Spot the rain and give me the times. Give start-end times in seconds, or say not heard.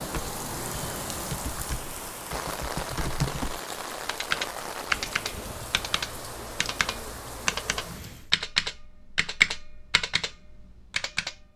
0.0-8.3.